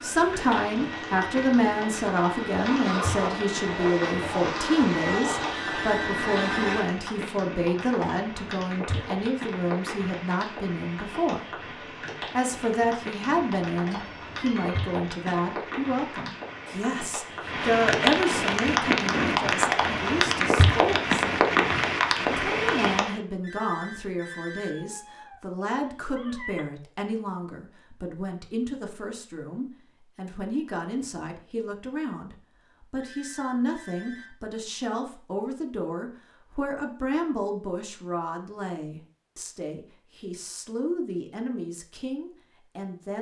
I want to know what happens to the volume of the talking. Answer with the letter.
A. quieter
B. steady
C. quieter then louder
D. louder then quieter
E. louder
A.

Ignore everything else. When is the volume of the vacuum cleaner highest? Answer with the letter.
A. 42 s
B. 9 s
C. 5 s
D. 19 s
C.